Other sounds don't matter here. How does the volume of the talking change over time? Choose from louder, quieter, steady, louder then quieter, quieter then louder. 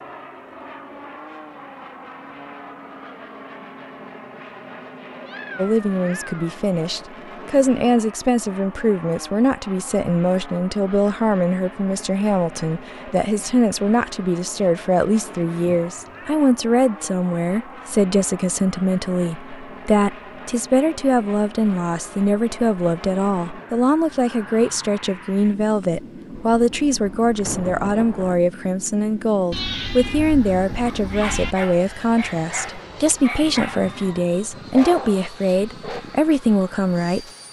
steady.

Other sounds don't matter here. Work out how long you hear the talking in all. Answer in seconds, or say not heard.
32 s.